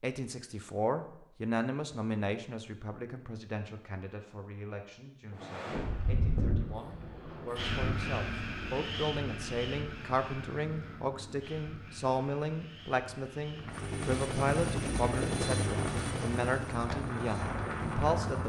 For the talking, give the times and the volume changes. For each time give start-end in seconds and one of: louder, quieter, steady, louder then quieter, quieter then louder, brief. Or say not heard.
0.0-18.4 quieter then louder.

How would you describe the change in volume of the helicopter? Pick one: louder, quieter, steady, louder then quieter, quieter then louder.
quieter.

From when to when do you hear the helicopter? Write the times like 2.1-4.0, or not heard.
13.6-18.4.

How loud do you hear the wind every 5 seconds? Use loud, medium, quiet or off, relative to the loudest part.
off, loud, medium, loud.